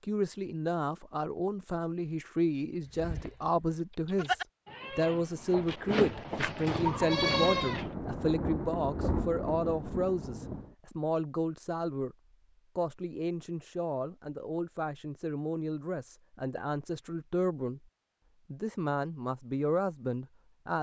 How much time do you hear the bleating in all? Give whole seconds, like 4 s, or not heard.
5 s.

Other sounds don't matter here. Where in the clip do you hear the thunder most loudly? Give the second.
9 s.